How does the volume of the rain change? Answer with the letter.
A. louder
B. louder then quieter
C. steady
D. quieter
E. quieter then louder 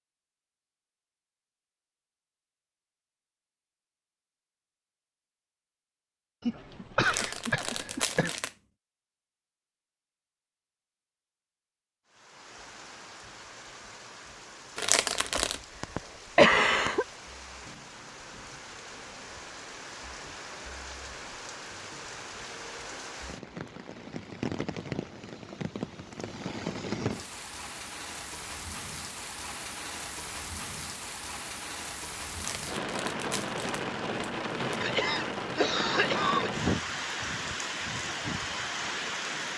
A.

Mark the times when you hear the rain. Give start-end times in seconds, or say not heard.
12.1-39.5.